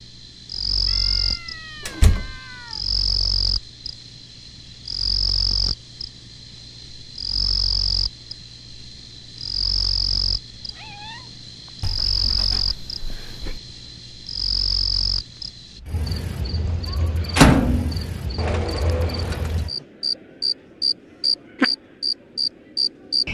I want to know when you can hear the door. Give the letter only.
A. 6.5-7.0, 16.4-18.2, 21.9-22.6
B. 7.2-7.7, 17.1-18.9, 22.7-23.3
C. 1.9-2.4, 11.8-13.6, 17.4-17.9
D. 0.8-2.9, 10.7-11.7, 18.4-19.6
C.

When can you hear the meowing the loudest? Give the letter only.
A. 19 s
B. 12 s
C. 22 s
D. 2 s
A.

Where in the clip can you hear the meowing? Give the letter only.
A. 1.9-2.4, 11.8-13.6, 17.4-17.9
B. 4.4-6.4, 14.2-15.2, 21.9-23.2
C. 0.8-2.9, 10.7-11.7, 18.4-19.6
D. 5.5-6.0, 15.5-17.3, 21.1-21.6
C.